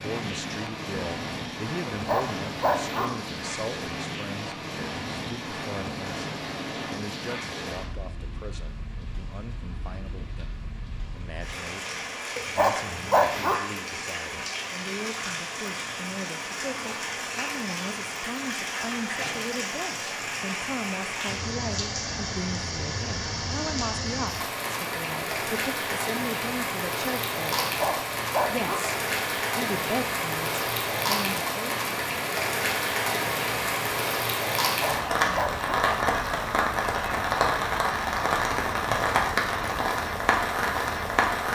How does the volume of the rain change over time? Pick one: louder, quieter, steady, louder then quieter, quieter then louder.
louder.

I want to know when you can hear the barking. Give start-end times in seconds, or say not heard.
1.9-3.1, 12.3-13.6, 27.6-28.8, 34.8-35.7.